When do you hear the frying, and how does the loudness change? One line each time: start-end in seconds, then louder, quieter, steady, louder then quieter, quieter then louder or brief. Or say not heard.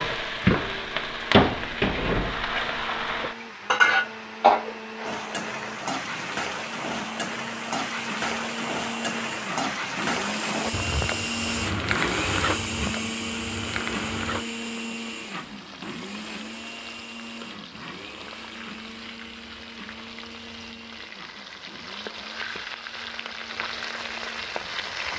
0.0-25.1 quieter then louder.